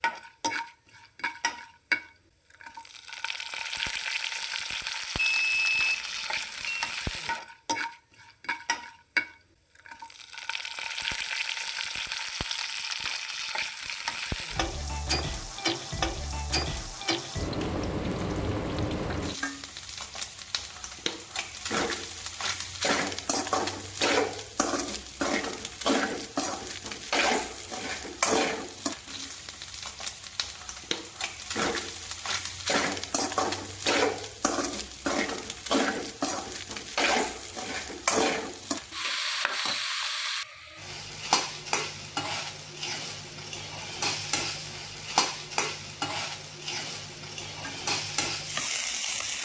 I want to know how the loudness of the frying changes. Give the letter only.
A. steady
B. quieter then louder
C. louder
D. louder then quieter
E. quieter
A.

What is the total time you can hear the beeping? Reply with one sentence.
You can hear the beeping for 2 seconds altogether.